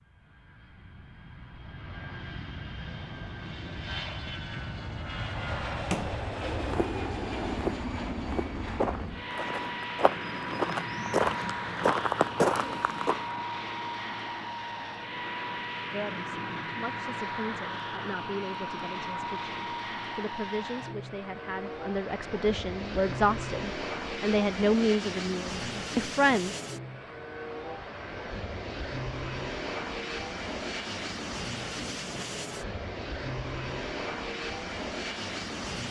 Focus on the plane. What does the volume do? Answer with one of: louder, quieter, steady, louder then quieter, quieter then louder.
steady.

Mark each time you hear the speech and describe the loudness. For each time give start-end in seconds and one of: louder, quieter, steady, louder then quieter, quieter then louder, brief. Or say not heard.
15.9-26.6 louder.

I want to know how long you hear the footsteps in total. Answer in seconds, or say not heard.
7 s.